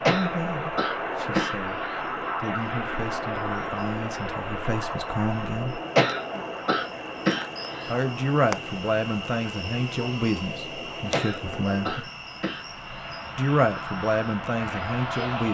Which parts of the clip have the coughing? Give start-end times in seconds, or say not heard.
0.1-2.0, 6.0-7.9, 11.1-13.1.